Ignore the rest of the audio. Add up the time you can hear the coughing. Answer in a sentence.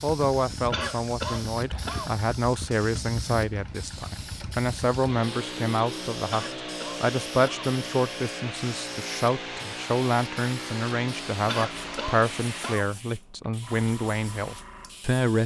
The coughing can be heard for 4 seconds in total.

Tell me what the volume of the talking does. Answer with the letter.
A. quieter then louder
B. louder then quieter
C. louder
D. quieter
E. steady
E.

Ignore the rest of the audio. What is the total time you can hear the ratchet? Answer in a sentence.
You can't hear the ratchet here.